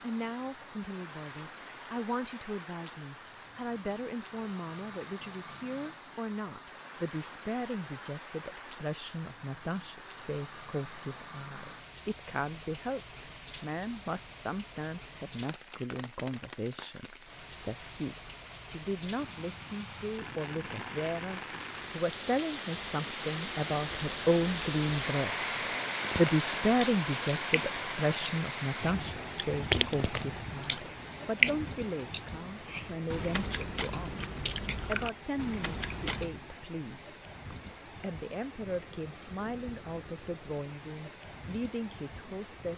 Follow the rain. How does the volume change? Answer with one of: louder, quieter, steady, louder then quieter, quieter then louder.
louder then quieter.